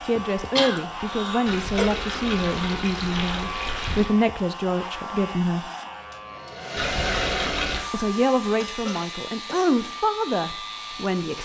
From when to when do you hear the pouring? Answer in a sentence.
You can hear the pouring from 1.4 to 4.1 s and from 6.8 to 7.8 s.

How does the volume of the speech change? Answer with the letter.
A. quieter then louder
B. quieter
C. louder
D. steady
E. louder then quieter
D.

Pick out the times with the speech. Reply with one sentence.
The speech can be heard from 0.0 to 5.7 s and from 7.9 to 11.4 s.